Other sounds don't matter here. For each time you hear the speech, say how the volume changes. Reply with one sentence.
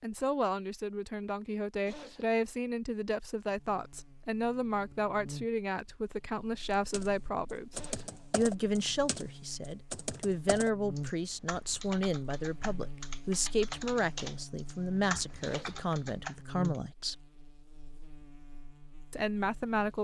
The speech can be heard from 0.0 to 17.2 s, at a steady volume; and briefly from 19.1 to 19.9 s.